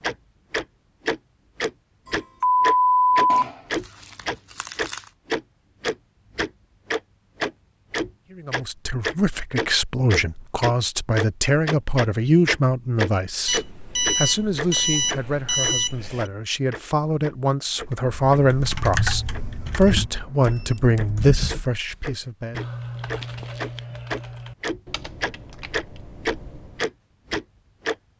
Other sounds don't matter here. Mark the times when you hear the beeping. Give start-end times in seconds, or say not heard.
2.0-3.5, 13.4-16.2, 19.2-21.4.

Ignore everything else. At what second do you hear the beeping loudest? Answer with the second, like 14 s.
3 s.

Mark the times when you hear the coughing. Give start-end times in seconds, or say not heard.
not heard.